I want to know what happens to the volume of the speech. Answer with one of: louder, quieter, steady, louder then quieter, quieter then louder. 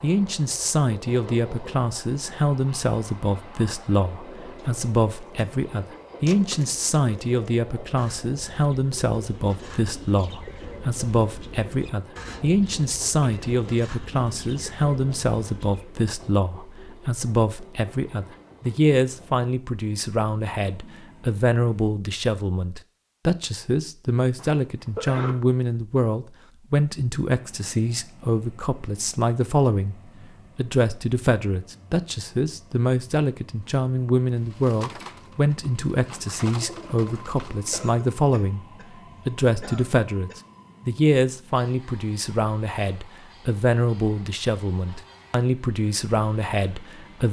steady.